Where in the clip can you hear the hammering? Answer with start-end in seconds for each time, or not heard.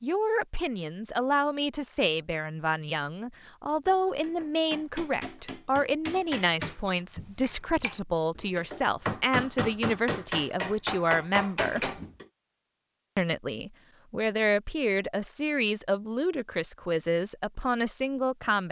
3.9-12.2.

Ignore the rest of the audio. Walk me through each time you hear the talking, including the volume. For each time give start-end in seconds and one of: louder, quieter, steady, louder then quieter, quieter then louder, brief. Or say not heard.
0.0-11.9 steady
13.2-18.6 steady.